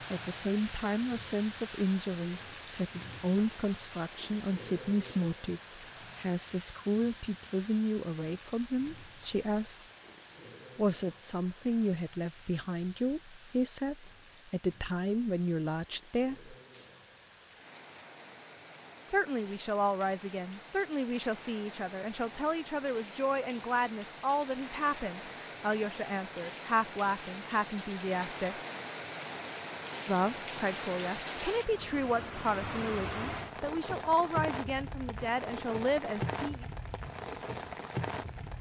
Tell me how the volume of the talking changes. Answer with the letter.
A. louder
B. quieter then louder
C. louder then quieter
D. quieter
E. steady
E.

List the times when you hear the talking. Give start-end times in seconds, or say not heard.
0.1-9.8, 10.8-16.6, 19.1-28.6, 30.1-36.6.